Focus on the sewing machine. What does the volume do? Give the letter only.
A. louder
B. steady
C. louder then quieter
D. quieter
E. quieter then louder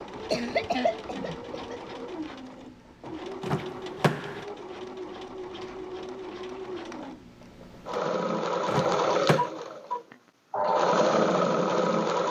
A.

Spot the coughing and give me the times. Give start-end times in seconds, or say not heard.
0.1-1.8.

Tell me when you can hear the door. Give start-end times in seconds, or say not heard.
3.4-4.5, 8.7-9.4.